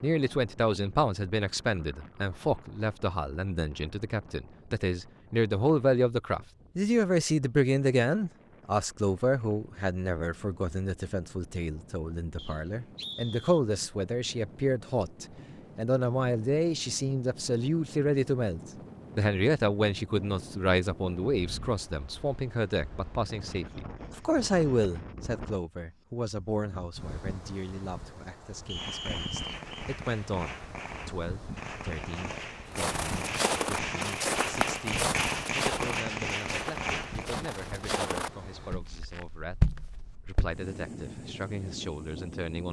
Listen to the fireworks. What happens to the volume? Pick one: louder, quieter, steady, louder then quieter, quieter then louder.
louder.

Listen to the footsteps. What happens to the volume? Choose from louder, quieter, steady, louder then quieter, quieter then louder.
quieter then louder.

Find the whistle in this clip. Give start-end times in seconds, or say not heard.
12.3-13.6, 28.6-29.6.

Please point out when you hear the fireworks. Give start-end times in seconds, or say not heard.
28.8-37.2.